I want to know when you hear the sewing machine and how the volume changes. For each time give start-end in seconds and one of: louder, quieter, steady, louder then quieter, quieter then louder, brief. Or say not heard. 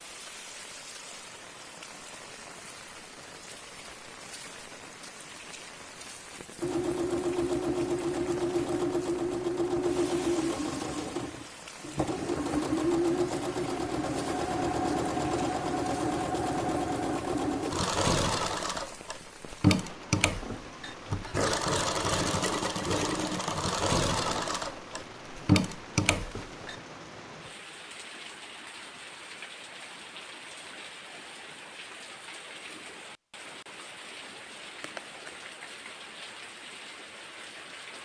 6.6-26.8 steady.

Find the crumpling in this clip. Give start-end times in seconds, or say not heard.
34.8-35.5.